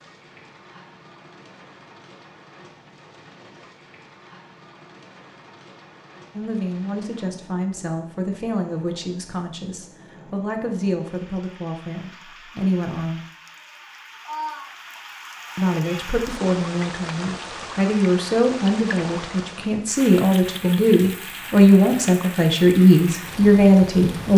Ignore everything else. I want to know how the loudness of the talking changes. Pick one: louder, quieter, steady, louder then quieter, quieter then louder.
louder.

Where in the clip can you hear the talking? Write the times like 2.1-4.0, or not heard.
6.3-13.2, 15.6-24.3.